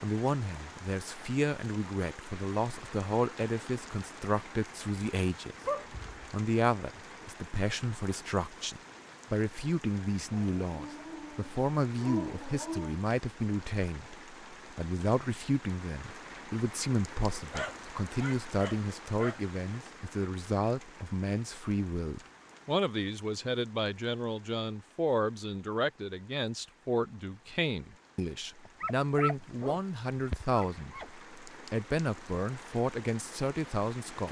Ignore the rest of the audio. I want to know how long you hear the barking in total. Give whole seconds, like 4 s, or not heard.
8 s.